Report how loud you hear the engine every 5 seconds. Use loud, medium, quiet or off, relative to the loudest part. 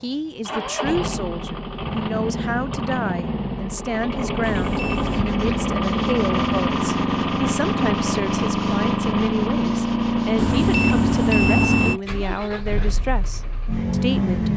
medium, loud, loud.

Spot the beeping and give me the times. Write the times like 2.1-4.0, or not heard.
4.4-5.2, 10.3-11.9.